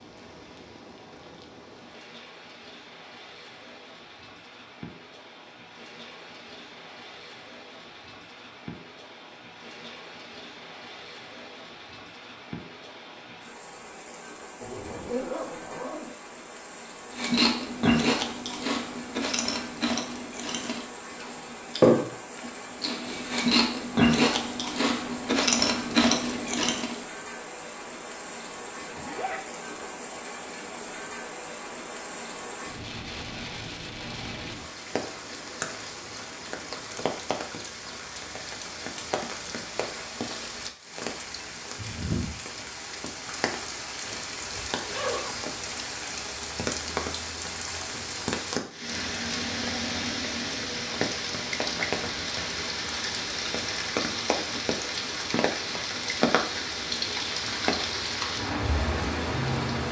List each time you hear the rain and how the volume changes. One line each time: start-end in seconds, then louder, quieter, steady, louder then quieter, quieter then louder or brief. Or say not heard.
0.0-59.8 louder.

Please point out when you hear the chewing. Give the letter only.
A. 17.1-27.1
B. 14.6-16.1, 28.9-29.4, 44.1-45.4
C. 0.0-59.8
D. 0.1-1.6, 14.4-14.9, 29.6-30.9
A.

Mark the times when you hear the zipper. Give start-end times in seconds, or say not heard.
14.6-16.1, 28.9-29.4, 44.1-45.4.